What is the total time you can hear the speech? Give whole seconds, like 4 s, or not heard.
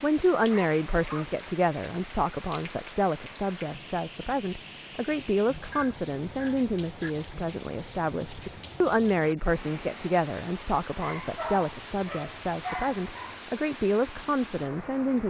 15 s.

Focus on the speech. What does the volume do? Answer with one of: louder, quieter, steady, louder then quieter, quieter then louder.
steady.